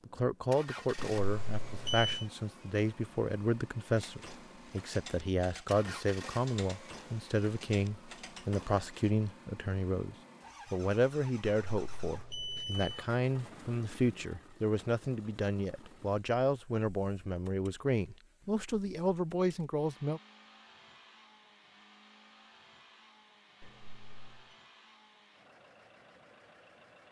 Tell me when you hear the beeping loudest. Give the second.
2 s.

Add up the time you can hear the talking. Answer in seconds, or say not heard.
20 s.